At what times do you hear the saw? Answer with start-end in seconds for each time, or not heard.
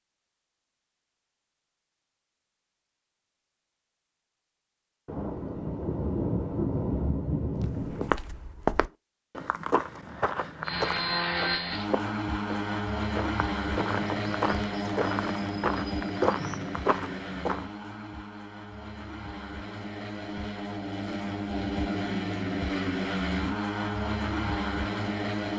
not heard.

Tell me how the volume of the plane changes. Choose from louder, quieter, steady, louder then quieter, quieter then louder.
quieter then louder.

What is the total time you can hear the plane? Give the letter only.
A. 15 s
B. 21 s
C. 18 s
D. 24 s
A.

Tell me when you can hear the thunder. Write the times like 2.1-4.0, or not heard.
5.0-8.2.